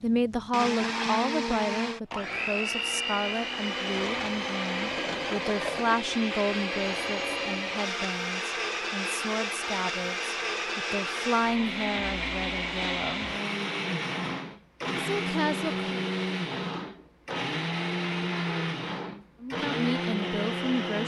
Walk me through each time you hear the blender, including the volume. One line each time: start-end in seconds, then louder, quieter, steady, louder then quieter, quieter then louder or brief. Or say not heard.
0.0-21.0 steady.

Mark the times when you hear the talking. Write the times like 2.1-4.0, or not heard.
0.0-13.3, 14.9-15.8, 19.4-21.0.